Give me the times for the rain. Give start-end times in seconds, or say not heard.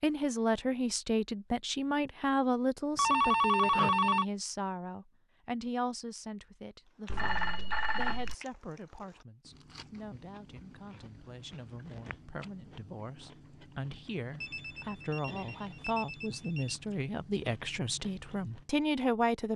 not heard.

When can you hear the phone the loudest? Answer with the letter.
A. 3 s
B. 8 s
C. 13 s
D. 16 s
A.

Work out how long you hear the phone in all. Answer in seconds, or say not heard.
5 s.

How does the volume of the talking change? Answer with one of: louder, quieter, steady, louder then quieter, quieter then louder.
quieter then louder.